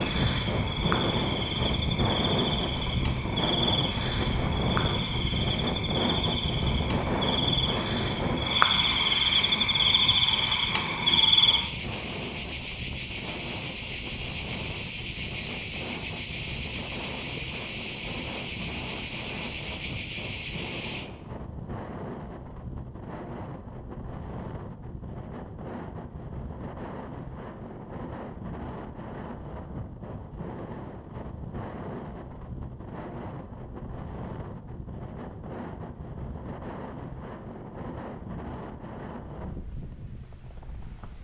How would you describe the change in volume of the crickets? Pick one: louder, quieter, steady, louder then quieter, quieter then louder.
louder.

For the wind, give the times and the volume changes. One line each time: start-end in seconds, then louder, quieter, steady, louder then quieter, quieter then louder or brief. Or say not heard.
0.0-41.1 quieter.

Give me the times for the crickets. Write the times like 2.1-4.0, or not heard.
0.0-21.1.